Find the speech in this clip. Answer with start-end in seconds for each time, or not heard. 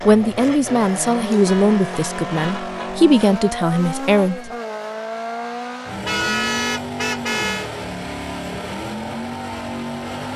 0.1-4.5.